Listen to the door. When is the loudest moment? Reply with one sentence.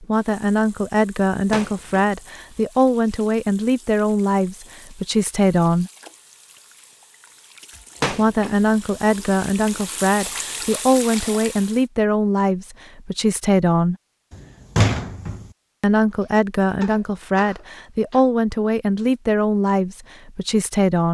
The loudest moment of the door is at 15 seconds.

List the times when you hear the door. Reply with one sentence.
You can hear the door from 1.3 to 2.0 s, from 7.8 to 9.4 s and from 14.8 to 15.4 s.